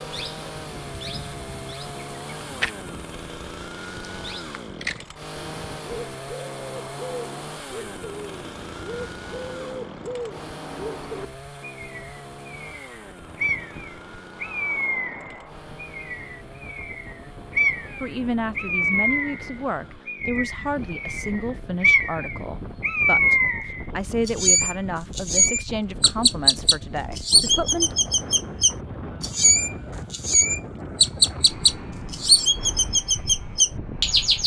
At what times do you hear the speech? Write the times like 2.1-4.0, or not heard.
18.0-27.9.